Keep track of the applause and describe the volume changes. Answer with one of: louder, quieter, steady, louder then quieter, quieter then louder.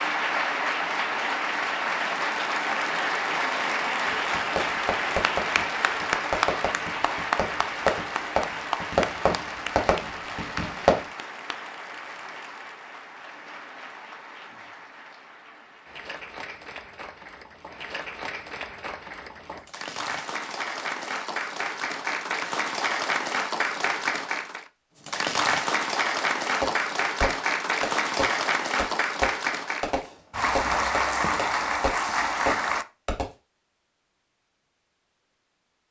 quieter then louder.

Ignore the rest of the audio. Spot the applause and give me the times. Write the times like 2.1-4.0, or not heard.
0.0-32.9.